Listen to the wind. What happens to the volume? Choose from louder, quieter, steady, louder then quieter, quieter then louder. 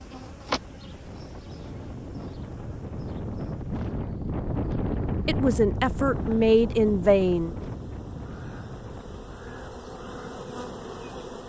louder then quieter.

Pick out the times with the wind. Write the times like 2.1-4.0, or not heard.
0.0-11.4.